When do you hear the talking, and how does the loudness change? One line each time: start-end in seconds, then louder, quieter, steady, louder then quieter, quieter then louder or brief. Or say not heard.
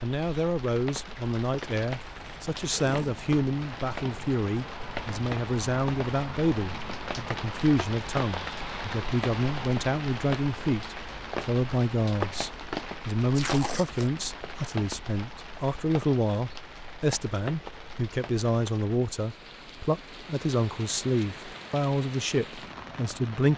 0.0-23.5 steady.